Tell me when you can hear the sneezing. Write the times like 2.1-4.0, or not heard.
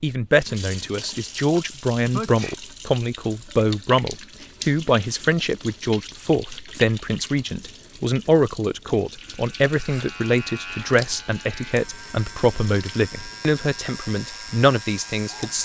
2.1-2.5.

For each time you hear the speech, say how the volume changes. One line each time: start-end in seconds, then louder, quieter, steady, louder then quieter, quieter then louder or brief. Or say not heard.
0.0-15.6 steady.